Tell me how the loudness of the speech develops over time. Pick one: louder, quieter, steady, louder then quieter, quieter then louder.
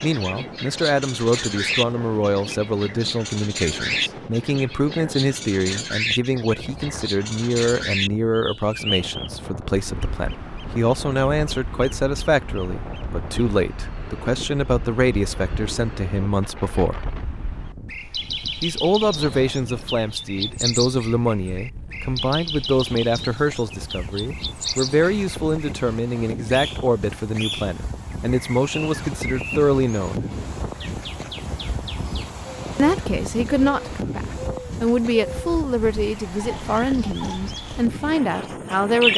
steady.